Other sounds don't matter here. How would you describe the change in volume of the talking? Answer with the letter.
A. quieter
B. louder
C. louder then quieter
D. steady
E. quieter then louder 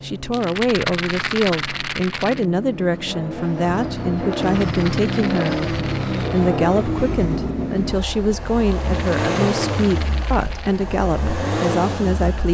D.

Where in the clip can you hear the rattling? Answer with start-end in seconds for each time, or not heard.
0.3-2.5, 4.3-6.5, 8.8-10.8.